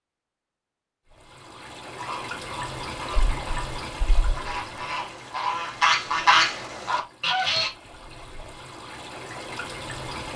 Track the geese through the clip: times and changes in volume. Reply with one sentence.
You can hear the geese from 1.9 to 7.7 s, getting louder.